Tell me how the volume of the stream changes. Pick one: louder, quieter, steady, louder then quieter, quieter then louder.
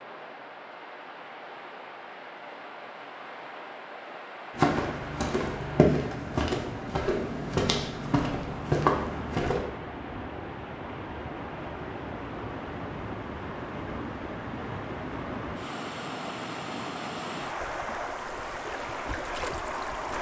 louder.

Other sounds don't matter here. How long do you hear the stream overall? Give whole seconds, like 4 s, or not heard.
20 s.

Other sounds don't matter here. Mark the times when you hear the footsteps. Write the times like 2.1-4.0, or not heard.
4.5-9.7.